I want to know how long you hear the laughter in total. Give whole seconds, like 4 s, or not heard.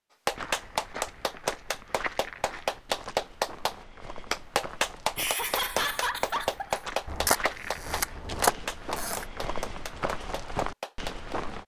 2 s.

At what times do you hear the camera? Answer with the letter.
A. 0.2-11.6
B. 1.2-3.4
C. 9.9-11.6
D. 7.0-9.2
D.